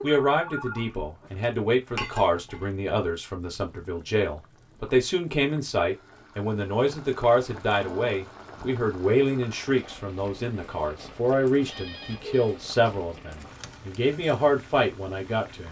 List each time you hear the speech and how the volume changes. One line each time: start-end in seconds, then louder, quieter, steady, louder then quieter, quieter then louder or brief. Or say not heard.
0.0-15.6 steady.